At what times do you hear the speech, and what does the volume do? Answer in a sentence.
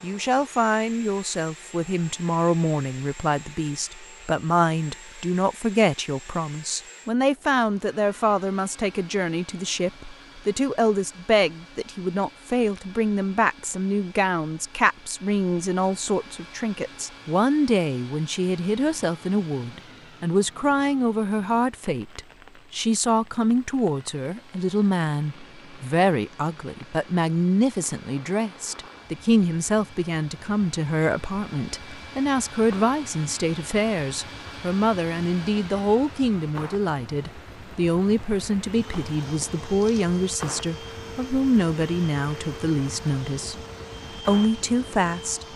The speech can be heard from 0.0 to 43.5 s, at a steady volume; and briefly from 44.2 to 45.5 s.